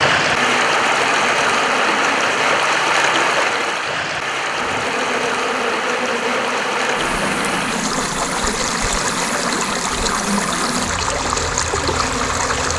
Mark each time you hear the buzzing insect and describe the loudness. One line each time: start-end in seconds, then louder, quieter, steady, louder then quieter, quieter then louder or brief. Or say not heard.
0.1-2.4 brief
4.5-12.7 steady.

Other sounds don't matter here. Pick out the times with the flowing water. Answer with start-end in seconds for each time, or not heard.
0.0-12.7.